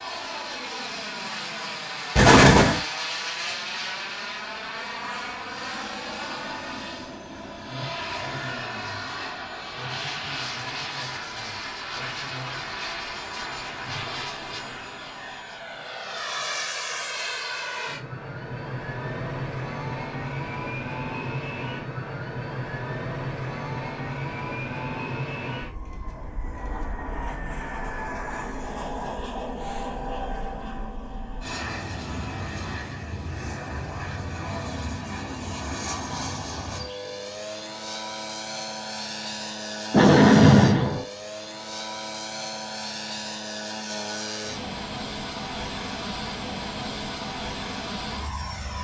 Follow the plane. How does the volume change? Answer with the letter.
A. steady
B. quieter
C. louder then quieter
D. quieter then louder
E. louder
A.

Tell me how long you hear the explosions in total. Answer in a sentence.
You can hear the explosions for 2 seconds altogether.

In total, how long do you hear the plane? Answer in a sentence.
You can hear the plane for 49 seconds altogether.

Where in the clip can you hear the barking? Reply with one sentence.
You can't hear the barking here.